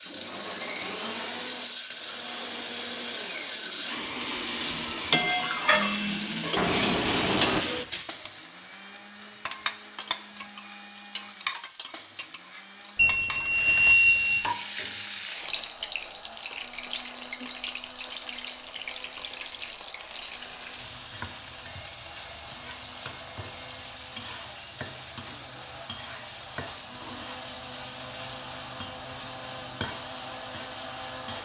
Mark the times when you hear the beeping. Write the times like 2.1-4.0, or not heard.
6.5-7.7, 12.9-14.4, 21.6-23.9.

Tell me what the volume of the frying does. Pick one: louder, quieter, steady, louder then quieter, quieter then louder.
quieter.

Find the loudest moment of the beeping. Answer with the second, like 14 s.
14 s.